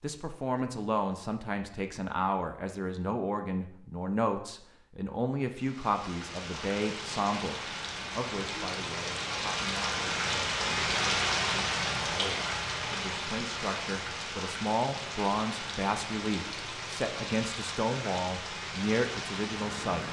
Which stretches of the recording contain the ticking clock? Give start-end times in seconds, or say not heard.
not heard.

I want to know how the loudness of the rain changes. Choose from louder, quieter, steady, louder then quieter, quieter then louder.
louder then quieter.